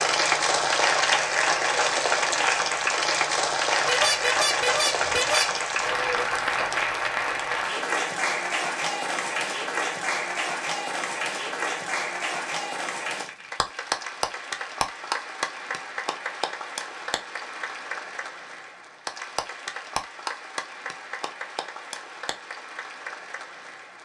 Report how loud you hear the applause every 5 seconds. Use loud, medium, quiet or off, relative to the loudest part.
loud, loud, medium, medium, quiet.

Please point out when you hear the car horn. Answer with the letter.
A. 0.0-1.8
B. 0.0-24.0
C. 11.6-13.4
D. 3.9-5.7
D.